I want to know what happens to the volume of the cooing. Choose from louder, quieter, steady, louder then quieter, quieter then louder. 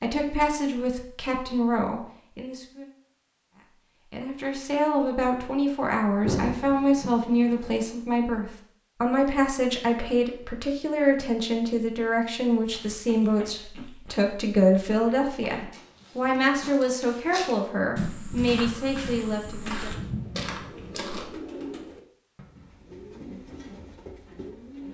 louder then quieter.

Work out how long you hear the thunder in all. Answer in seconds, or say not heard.
5 s.